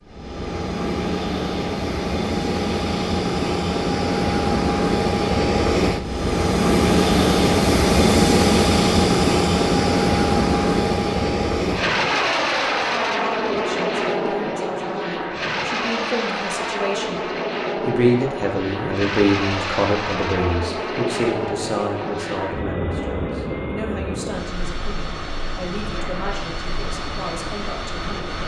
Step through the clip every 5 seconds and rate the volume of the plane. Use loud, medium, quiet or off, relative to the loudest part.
medium, loud, loud, medium, medium, quiet.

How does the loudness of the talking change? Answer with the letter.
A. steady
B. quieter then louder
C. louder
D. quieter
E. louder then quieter
E.